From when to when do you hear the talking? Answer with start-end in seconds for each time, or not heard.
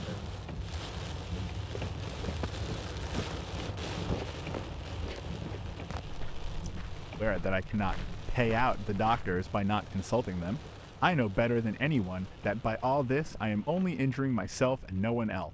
7.2-15.4.